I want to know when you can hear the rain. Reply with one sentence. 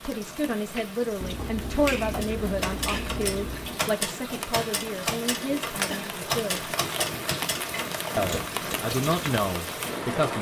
The rain can be heard from 0.0 to 10.3 s.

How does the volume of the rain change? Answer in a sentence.
The volume of the rain goes up.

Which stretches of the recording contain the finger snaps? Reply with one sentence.
The finger snaps can be heard from 1.2 to 3.8 s.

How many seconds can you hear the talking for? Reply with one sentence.
The talking can be heard for 9 seconds in total.